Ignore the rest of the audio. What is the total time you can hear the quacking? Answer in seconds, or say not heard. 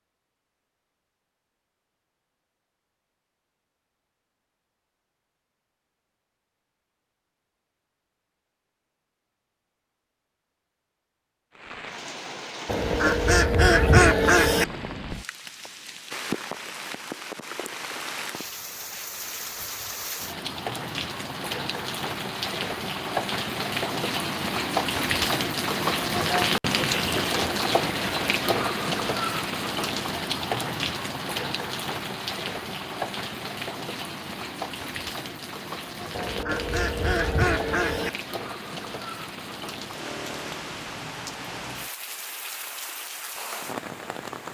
4 s.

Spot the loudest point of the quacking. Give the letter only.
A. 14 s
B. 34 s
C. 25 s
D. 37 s
A.